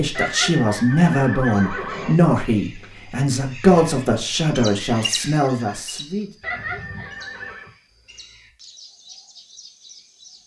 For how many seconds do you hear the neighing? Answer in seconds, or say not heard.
3 s.